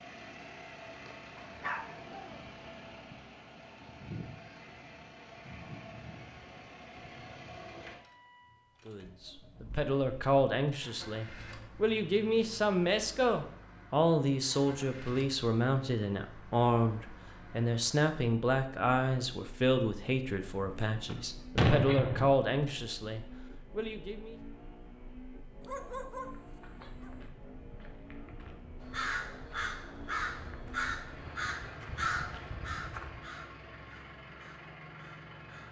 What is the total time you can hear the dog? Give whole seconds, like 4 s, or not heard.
3 s.